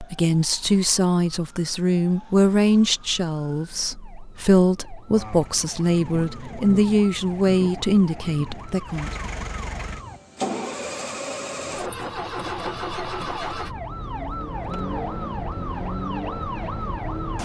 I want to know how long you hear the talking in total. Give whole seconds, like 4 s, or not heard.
9 s.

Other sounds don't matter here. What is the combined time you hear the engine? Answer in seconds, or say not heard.
12 s.